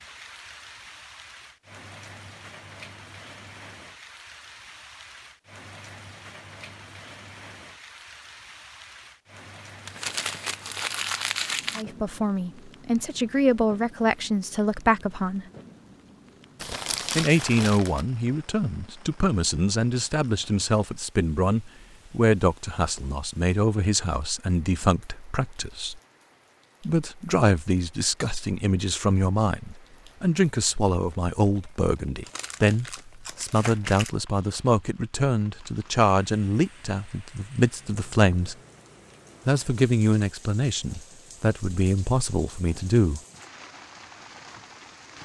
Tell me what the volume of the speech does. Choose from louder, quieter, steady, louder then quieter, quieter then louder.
steady.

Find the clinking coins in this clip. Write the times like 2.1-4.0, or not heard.
not heard.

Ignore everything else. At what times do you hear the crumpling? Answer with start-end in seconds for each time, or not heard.
9.8-11.8, 16.6-18.1, 32.2-34.1.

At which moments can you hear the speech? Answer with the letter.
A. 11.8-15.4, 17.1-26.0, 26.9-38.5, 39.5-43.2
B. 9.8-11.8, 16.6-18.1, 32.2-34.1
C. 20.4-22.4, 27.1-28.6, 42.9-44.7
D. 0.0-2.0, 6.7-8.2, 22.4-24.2
A.